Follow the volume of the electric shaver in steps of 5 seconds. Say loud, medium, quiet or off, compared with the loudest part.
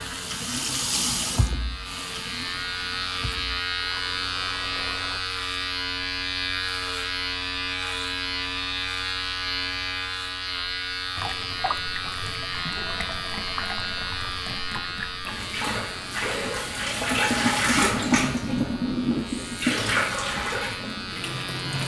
loud, loud, loud, medium, medium.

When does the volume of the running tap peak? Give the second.
18 s.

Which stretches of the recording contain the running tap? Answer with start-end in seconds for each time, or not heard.
0.0-5.2, 11.2-21.8.